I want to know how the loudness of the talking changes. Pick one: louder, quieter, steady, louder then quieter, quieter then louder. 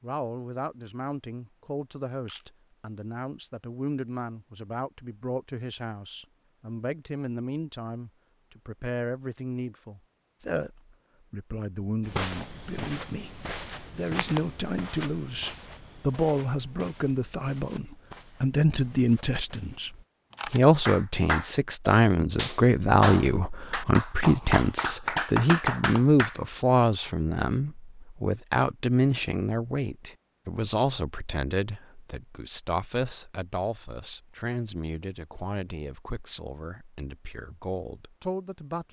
louder then quieter.